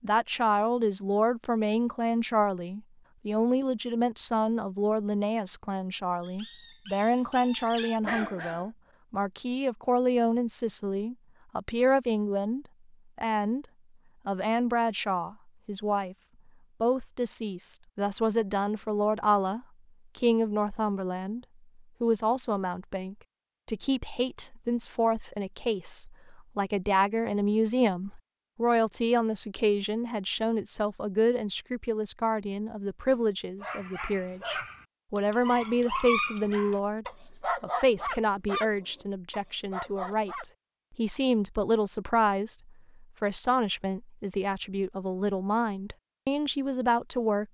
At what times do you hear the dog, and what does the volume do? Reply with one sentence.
You can hear the dog briefly from 6.2 to 8.8 s; and from 33.1 to 40.5 s, getting louder then quieter.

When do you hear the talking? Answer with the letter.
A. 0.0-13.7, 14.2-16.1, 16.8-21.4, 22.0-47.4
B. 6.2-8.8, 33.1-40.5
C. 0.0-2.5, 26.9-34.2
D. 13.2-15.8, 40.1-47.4
A.